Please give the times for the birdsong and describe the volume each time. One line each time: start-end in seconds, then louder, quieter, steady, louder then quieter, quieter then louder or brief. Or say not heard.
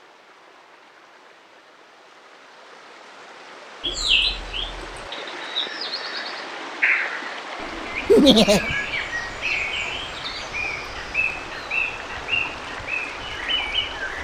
3.8-14.1 steady.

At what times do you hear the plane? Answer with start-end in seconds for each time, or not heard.
not heard.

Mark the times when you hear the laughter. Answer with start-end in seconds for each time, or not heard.
8.1-8.7.